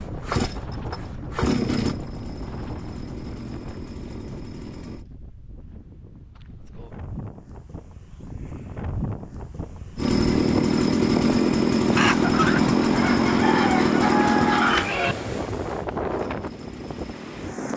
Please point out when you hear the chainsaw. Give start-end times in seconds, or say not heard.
0.0-5.0, 9.9-17.7.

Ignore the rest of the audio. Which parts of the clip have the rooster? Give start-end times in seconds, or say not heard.
11.9-15.2.